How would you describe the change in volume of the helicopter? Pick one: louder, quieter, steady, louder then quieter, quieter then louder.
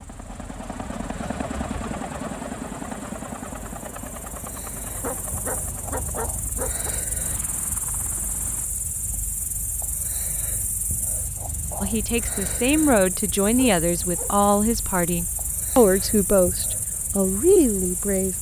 quieter.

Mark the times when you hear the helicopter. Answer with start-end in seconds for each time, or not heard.
0.0-8.7.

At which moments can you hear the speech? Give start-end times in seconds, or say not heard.
11.8-18.3.